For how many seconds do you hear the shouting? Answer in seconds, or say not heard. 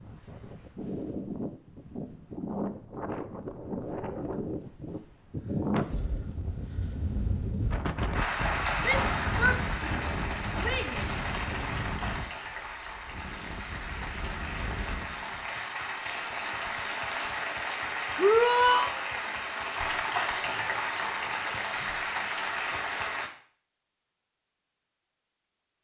3 s.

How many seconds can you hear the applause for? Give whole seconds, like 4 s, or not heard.
15 s.